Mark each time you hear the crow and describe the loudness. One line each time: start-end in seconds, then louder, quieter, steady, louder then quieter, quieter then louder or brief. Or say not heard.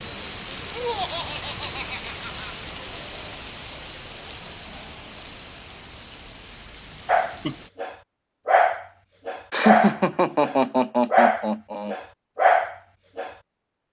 not heard.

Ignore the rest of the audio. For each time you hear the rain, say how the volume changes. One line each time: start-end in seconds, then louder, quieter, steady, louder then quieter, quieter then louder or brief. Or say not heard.
0.0-7.7 quieter.